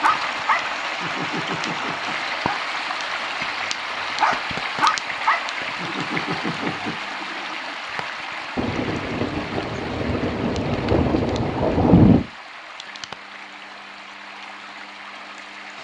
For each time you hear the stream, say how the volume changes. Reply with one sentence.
You can hear the stream from 0.0 to 15.7 s, getting quieter.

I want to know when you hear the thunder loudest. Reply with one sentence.
The volume of the thunder peaks at 12 seconds.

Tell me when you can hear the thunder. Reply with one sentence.
You can hear the thunder from 8.6 to 12.2 s.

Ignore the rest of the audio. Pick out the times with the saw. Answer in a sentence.
The saw can't be heard in this clip.